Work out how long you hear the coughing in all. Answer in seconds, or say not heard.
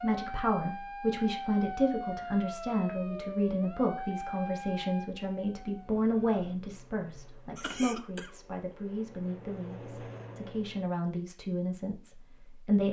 2 s.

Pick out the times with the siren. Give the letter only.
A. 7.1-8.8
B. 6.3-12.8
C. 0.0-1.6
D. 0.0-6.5
D.